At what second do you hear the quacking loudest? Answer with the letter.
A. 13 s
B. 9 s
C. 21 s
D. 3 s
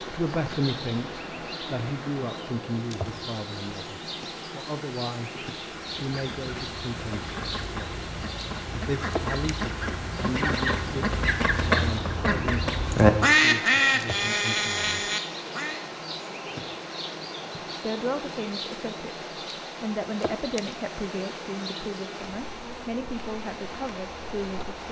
A.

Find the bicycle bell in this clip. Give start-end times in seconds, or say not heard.
not heard.